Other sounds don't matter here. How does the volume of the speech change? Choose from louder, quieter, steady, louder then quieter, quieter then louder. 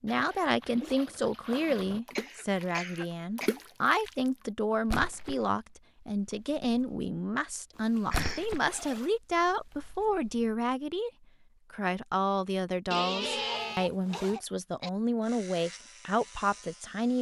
steady.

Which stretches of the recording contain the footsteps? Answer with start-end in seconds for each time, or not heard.
not heard.